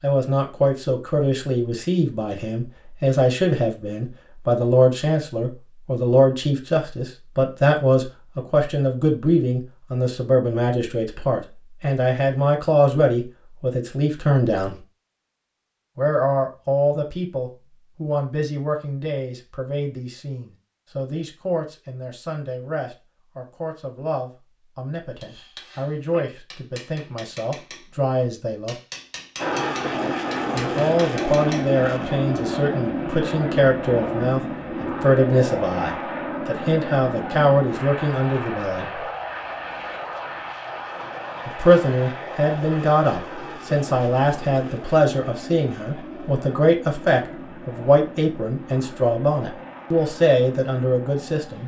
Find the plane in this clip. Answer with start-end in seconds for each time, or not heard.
29.4-51.6.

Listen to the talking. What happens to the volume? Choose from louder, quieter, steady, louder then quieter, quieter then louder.
quieter then louder.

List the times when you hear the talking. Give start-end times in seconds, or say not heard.
0.0-14.8, 15.9-28.8, 30.5-39.0, 41.5-51.6.